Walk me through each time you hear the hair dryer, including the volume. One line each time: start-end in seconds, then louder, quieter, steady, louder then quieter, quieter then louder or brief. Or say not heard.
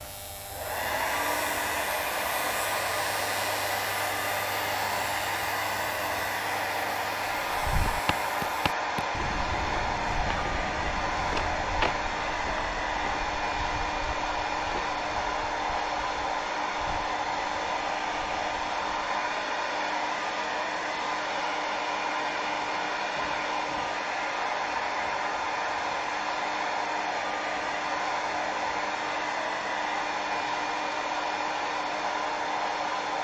0.0-33.1 steady.